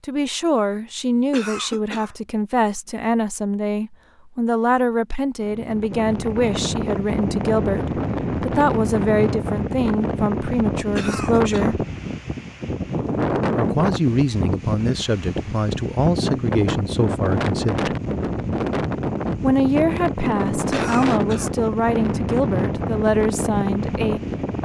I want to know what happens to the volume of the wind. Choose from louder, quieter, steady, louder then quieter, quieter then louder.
steady.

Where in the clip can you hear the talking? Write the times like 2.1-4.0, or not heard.
0.0-11.8, 13.6-17.9, 19.4-24.2.